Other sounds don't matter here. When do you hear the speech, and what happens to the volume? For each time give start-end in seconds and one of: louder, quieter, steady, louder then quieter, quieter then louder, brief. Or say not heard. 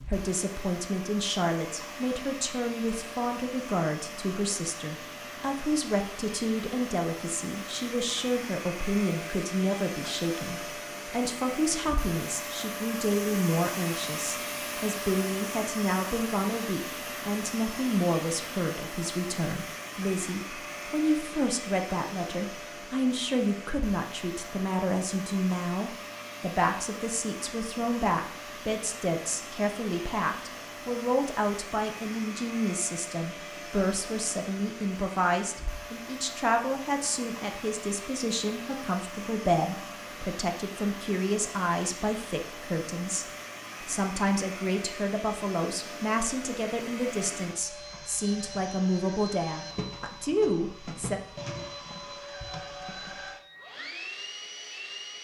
0.0-51.2 steady.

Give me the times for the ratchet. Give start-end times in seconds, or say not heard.
not heard.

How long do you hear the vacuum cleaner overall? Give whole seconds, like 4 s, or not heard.
55 s.